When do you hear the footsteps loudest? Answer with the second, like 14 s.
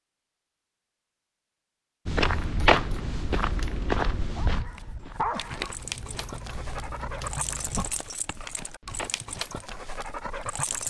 3 s.